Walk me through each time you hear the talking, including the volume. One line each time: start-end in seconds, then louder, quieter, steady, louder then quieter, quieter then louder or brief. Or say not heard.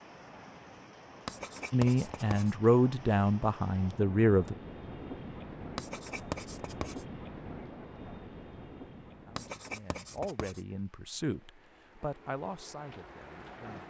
1.7-4.5 brief
9.2-13.8 louder then quieter.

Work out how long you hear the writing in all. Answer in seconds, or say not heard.
4 s.